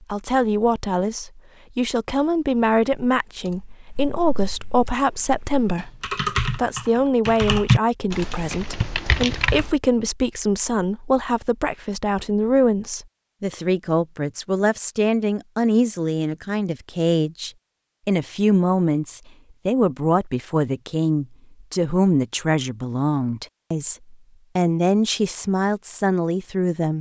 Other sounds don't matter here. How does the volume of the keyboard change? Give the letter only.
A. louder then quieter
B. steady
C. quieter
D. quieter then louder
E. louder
A.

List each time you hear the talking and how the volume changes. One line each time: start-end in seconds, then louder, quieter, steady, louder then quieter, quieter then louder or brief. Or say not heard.
0.1-26.9 steady.